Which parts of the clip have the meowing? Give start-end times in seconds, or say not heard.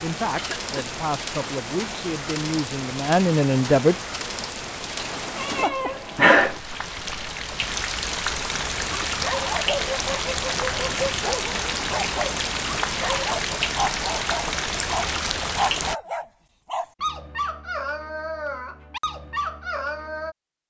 5.0-6.6.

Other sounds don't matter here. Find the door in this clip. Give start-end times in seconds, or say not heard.
not heard.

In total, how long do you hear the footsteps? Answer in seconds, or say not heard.
not heard.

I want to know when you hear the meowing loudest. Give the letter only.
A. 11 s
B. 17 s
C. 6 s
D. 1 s
C.